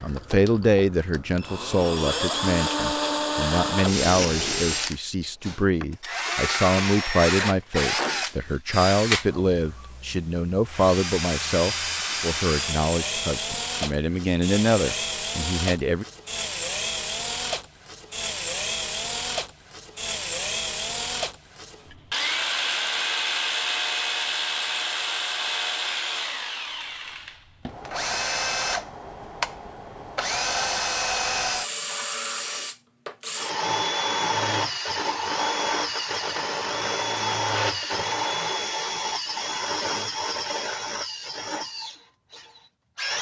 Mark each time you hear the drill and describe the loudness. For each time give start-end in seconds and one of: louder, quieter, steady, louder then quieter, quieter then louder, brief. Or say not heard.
0.0-43.1 steady.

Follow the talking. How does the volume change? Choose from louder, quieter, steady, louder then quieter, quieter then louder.
steady.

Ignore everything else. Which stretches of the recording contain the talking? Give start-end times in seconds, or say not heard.
0.0-16.1.